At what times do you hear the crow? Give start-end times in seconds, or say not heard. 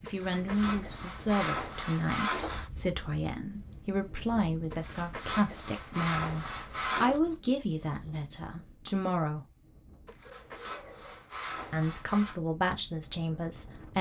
not heard.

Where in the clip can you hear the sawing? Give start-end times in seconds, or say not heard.
0.1-2.7, 4.7-7.2, 10.1-12.4.